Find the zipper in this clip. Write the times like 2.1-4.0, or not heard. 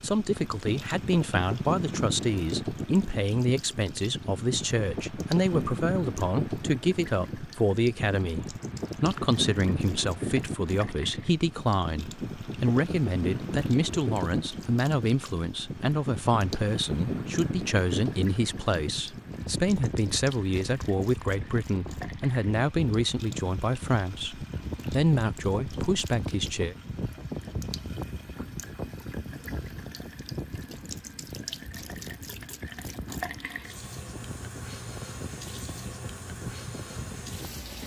not heard.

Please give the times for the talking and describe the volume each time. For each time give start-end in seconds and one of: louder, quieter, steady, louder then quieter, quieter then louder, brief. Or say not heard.
0.0-26.8 steady.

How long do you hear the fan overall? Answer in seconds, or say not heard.
38 s.